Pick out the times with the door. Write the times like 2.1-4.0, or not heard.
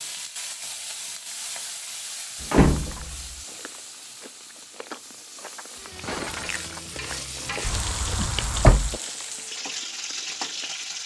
2.4-3.2, 7.6-8.9.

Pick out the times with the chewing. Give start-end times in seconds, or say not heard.
3.2-11.0.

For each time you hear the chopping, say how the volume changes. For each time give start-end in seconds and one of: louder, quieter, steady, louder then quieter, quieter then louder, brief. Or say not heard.
not heard.